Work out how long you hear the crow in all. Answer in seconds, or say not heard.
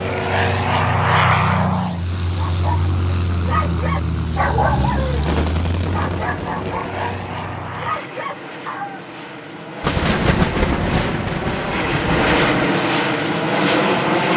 not heard.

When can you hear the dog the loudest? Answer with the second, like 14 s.
5 s.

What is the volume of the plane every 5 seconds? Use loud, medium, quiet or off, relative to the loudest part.
loud, medium, loud.